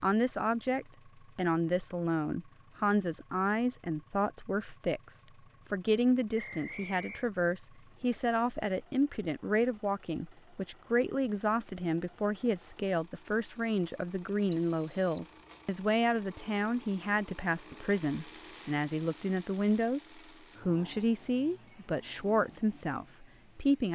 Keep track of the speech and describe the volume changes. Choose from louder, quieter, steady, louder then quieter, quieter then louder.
steady.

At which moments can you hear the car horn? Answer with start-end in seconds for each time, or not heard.
not heard.